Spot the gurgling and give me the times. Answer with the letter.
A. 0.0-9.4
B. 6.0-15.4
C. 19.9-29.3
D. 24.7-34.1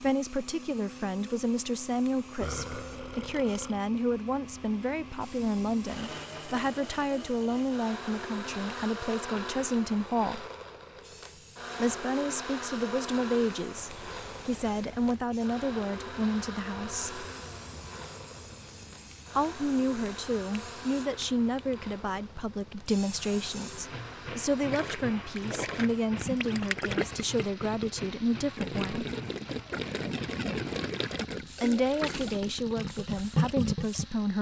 D.